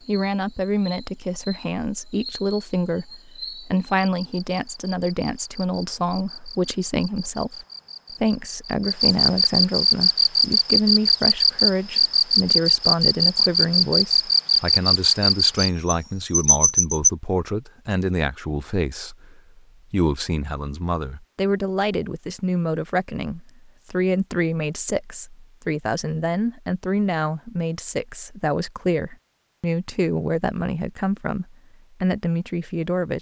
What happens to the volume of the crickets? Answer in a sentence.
The loudness of the crickets goes up.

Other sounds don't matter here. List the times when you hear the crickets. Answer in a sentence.
The crickets can be heard from 0.0 to 17.1 s.